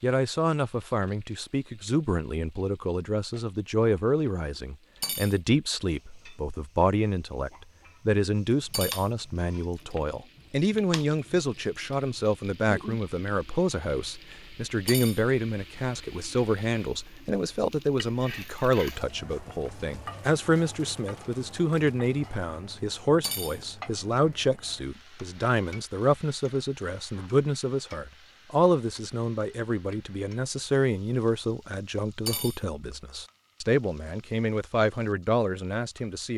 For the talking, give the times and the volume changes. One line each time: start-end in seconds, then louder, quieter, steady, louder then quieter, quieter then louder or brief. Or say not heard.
0.0-36.3 steady.